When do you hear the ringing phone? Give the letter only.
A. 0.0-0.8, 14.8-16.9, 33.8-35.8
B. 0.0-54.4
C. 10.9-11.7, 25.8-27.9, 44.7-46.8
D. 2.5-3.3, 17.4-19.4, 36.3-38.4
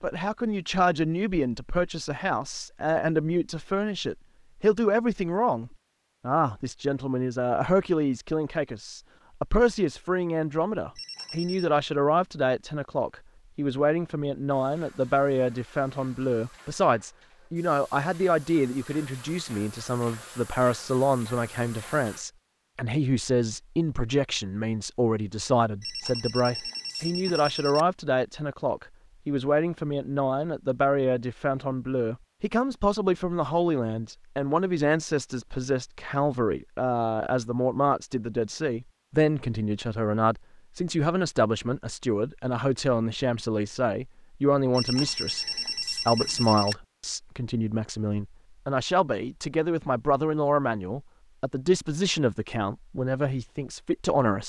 C.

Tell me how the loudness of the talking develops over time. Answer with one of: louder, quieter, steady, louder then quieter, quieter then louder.
steady.